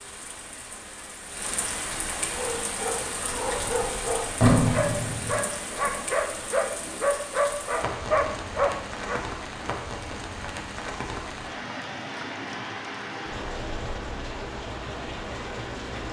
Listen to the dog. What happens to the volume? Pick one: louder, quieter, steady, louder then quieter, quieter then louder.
louder.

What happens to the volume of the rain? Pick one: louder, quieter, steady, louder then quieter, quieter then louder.
steady.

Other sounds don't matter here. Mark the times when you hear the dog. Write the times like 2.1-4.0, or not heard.
2.3-9.2.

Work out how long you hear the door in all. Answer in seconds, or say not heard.
2 s.